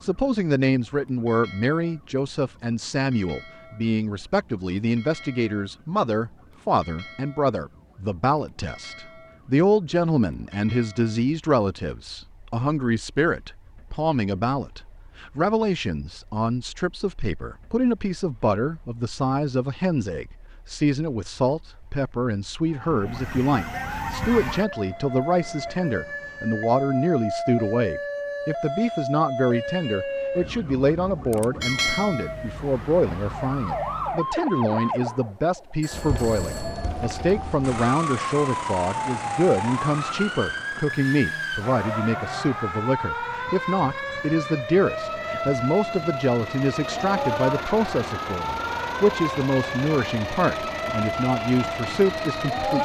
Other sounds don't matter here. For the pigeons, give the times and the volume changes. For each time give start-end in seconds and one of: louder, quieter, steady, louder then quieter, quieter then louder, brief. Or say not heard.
not heard.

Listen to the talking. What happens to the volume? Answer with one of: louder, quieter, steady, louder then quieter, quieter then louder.
steady.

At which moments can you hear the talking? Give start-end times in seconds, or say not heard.
0.0-52.8.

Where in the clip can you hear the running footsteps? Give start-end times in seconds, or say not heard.
not heard.